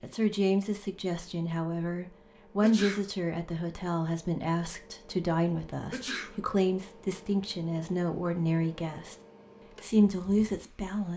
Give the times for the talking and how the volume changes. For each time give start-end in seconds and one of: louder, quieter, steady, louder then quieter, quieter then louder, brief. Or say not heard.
0.0-9.2 steady
9.8-11.1 brief.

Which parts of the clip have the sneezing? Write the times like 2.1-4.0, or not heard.
2.6-3.0, 5.9-6.3.